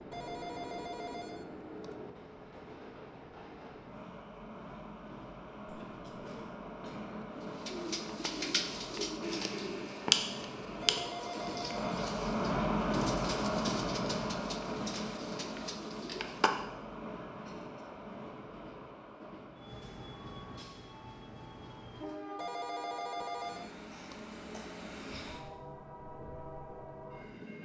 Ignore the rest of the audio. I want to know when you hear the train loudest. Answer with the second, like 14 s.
13 s.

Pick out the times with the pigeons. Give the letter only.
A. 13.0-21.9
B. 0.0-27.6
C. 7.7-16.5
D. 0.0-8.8
C.